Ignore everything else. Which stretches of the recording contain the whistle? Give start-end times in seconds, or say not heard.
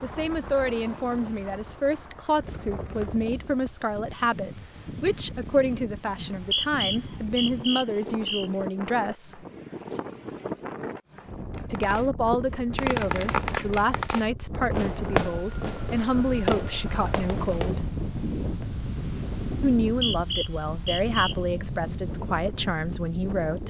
6.2-8.5, 19.9-21.4.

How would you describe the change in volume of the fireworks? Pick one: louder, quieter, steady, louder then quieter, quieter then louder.
quieter.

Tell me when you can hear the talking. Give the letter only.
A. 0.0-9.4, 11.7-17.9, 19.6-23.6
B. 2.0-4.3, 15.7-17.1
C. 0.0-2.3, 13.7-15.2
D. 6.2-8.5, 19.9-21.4
A.